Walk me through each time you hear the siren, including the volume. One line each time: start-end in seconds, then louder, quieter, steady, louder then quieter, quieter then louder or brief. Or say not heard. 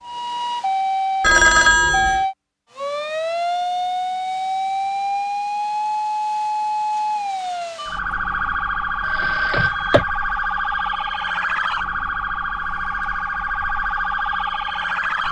0.0-15.2 steady.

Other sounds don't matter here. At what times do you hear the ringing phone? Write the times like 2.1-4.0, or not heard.
1.2-2.2, 9.0-10.1.